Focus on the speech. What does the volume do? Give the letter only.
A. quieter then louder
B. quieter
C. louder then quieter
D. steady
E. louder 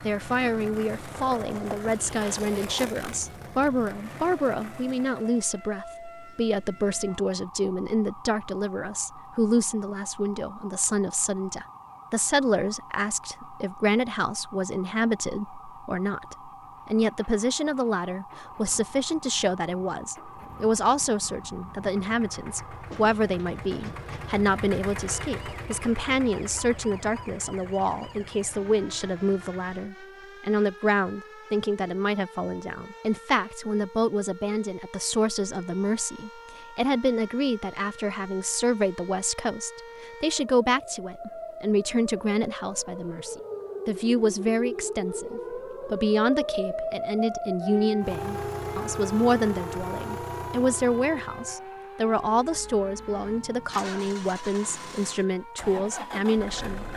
D.